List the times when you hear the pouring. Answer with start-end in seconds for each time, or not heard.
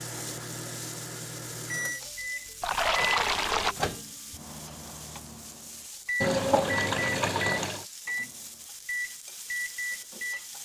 2.6-3.8, 6.2-7.8.